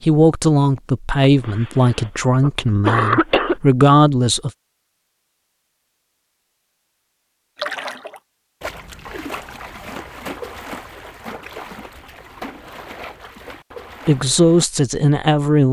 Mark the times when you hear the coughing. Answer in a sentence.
The coughing can be heard from 1.2 to 3.5 s.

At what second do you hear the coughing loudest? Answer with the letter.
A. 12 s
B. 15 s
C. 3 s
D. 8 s
C.